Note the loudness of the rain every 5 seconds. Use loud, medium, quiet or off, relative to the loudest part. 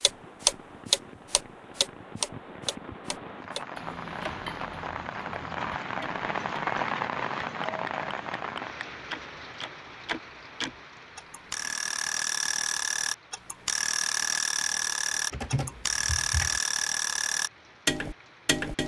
medium, loud, quiet, quiet.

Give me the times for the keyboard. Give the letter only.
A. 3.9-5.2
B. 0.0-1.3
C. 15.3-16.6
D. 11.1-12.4
C.